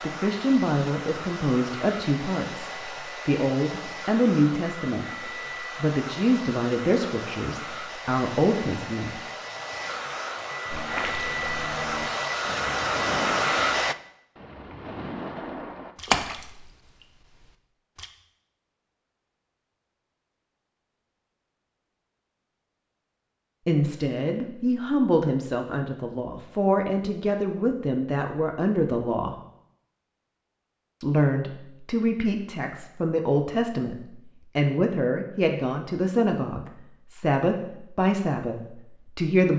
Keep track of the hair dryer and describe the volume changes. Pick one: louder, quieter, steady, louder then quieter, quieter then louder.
louder.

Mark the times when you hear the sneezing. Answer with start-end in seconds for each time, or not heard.
not heard.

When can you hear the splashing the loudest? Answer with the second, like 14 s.
16 s.